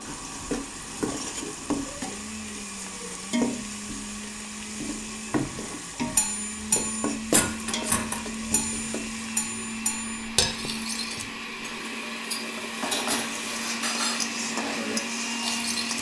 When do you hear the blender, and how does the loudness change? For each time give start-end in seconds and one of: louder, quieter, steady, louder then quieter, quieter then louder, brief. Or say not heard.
0.0-15.9 louder.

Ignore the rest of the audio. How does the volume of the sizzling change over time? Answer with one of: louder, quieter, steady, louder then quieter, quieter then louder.
quieter then louder.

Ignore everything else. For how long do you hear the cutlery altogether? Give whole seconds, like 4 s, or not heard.
10 s.